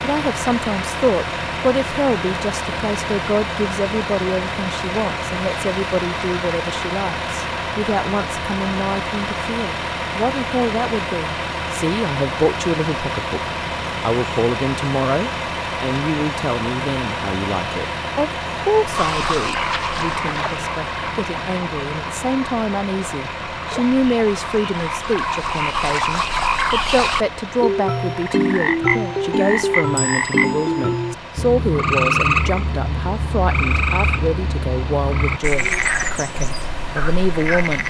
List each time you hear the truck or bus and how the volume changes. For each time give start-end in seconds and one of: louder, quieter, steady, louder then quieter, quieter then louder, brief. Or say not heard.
0.0-37.8 quieter.